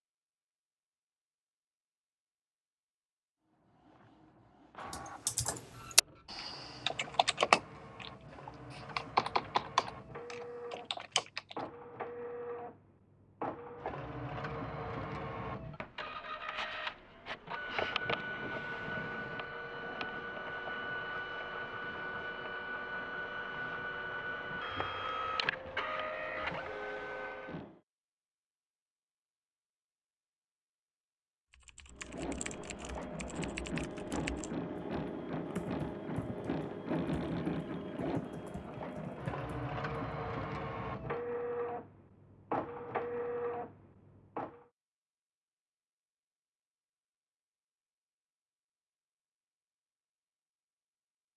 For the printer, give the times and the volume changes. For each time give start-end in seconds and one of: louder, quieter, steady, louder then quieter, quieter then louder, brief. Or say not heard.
3.5-27.8 louder
31.9-44.6 steady.